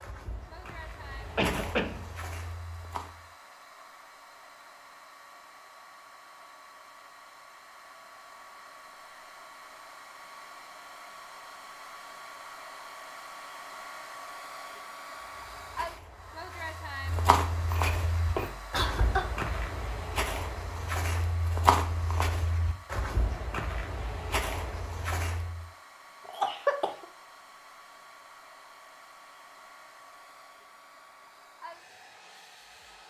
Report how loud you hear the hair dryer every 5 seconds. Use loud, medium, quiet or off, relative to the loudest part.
medium, medium, loud, loud, medium, medium, medium.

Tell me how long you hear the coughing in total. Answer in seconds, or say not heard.
3 s.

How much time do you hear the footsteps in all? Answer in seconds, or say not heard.
14 s.